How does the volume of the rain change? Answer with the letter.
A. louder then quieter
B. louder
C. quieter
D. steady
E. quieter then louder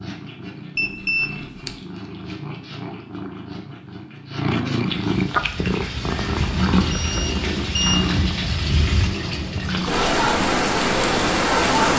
B.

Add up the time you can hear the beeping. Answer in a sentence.
The beeping can be heard for 2 seconds in total.